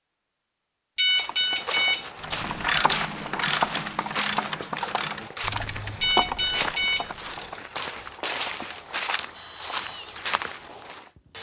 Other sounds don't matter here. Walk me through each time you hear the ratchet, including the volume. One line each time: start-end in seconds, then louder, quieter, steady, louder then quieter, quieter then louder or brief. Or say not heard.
2.2-7.7 quieter.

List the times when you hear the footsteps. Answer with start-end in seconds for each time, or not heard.
1.1-11.1.